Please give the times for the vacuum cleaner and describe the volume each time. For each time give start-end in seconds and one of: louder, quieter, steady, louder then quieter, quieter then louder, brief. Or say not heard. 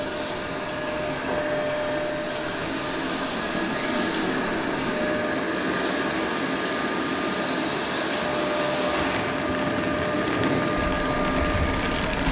0.0-12.2 steady.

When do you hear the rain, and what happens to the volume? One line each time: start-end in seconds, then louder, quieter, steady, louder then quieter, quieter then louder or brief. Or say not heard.
0.1-12.2 louder.